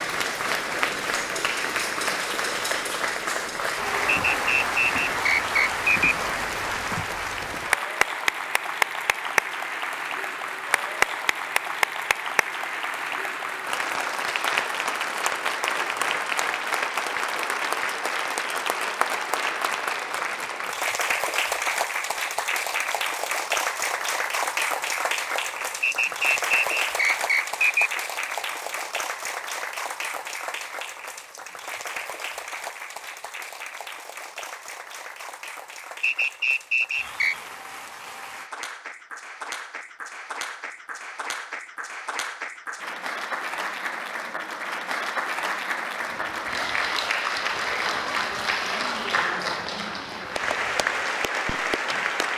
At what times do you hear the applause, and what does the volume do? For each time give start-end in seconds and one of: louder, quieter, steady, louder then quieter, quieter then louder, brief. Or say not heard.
0.0-52.3 quieter then louder.